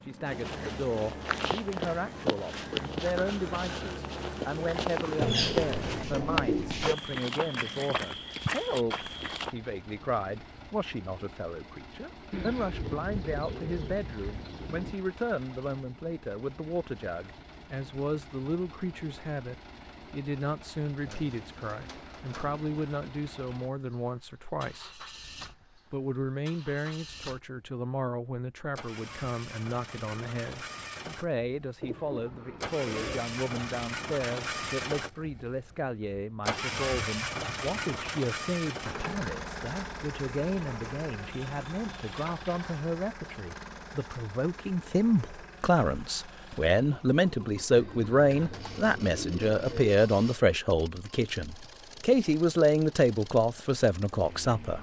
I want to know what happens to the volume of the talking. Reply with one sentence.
The volume of the talking goes up.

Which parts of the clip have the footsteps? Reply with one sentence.
You can hear the footsteps from 0.2 to 9.6 s.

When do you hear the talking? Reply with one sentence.
You can hear the talking from 0.1 to 25.1 s and from 25.9 to 54.7 s.